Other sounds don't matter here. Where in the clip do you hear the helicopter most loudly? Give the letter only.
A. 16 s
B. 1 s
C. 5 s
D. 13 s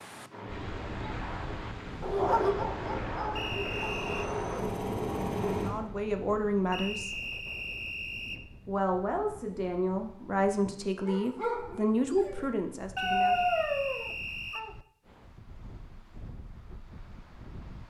C.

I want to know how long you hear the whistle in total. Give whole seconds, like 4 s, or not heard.
4 s.